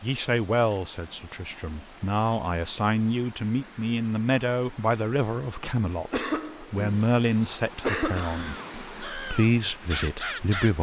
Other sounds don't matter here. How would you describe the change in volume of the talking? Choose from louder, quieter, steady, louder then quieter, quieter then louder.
steady.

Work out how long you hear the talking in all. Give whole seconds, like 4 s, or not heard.
11 s.